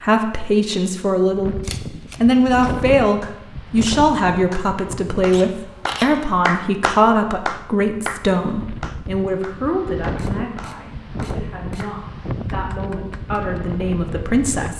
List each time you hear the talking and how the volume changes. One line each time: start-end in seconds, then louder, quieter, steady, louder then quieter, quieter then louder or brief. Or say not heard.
0.0-1.6 brief
2.2-14.7 quieter.